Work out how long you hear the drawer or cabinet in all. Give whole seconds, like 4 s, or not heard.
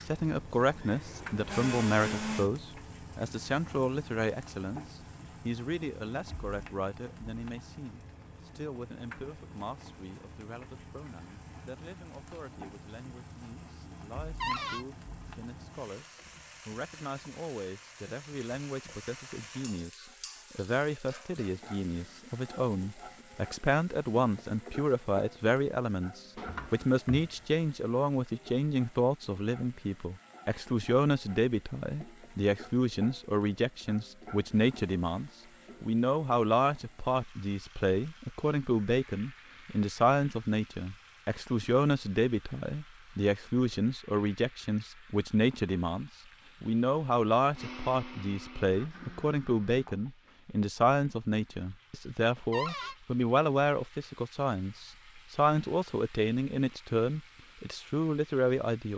2 s.